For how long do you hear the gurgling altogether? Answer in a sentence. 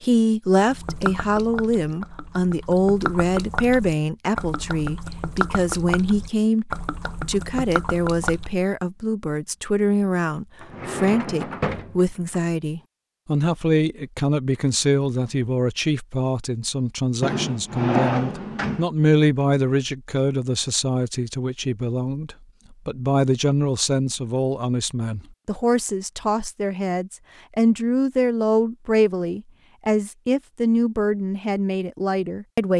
You can hear the gurgling for 8 seconds altogether.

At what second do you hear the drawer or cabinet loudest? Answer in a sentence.
The loudest moment of the drawer or cabinet is at 18 seconds.